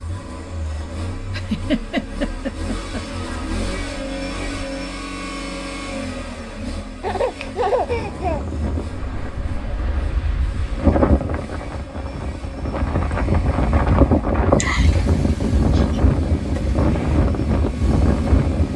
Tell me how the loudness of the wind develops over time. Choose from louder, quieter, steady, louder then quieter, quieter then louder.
louder.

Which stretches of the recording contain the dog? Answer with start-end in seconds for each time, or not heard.
not heard.